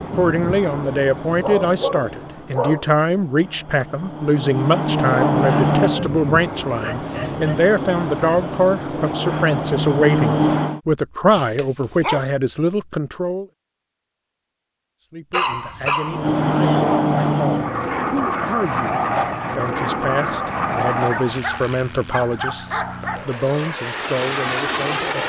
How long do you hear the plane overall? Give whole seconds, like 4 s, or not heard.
20 s.